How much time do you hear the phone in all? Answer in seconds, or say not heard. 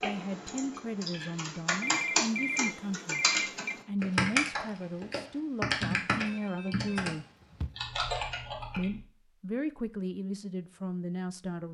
4 s.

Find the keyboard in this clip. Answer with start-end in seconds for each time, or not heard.
0.0-9.0.